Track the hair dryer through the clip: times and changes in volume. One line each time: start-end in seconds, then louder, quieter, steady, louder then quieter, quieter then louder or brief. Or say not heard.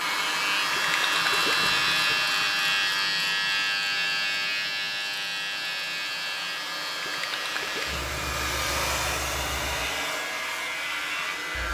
0.0-11.6 quieter then louder.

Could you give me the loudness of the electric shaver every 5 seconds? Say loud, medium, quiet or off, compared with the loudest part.
loud, medium, medium.